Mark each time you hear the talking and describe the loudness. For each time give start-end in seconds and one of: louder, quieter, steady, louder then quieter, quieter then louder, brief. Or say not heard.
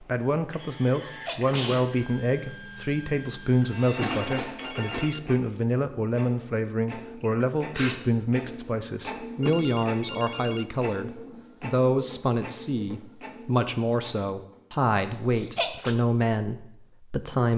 0.0-17.5 steady.